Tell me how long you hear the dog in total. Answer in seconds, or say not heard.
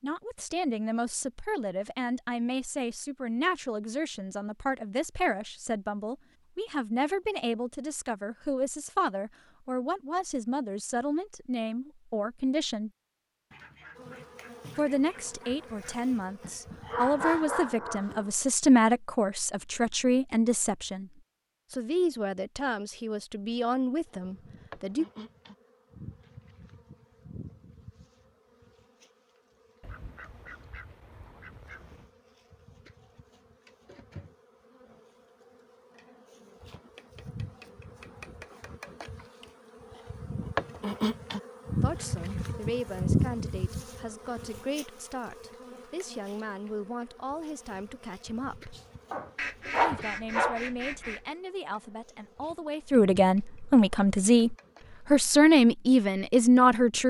4 s.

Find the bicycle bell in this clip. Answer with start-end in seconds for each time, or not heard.
not heard.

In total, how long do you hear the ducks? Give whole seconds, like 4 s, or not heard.
7 s.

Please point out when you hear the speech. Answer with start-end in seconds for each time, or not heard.
0.0-12.9, 14.8-25.1, 41.8-48.8, 49.8-57.0.